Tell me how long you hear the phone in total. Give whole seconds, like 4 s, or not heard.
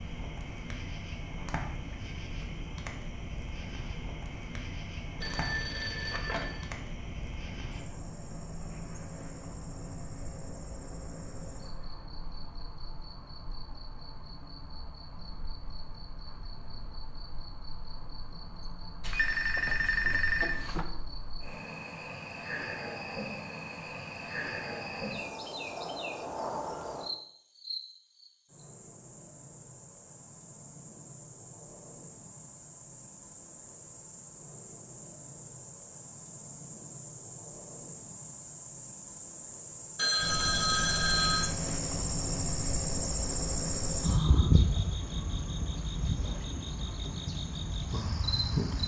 5 s.